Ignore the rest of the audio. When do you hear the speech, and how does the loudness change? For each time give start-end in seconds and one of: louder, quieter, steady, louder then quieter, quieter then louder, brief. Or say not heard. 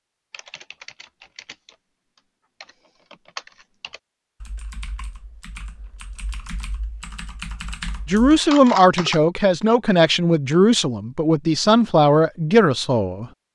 8.1-13.2 steady.